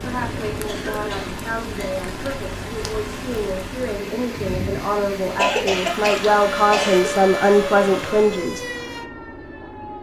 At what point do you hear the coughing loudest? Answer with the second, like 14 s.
6 s.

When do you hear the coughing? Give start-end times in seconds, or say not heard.
0.7-2.0, 5.3-7.1.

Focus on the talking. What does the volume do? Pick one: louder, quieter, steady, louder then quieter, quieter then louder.
louder.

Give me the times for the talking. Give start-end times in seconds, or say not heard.
0.0-8.7.